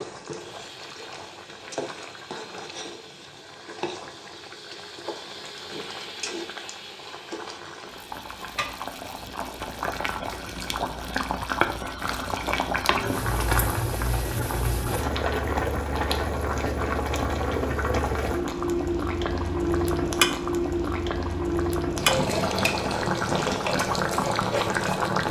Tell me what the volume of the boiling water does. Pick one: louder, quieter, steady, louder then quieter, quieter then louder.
louder.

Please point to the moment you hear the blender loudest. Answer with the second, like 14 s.
6 s.